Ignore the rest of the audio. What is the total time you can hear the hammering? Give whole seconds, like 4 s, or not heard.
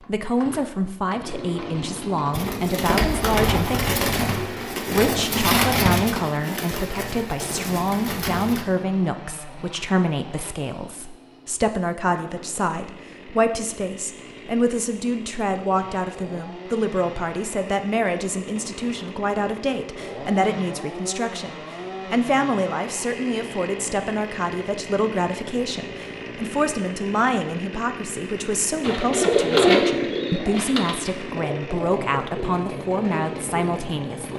not heard.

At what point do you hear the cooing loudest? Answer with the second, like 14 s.
30 s.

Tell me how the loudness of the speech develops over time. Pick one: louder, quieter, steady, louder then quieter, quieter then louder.
steady.